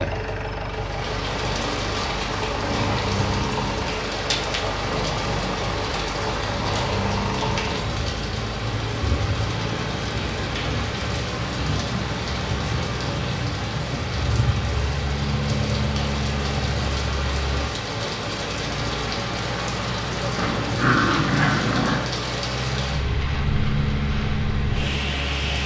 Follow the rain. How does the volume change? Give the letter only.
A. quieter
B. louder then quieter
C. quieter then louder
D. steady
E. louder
D.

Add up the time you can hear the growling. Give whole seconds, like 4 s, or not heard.
3 s.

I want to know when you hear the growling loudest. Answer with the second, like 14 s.
21 s.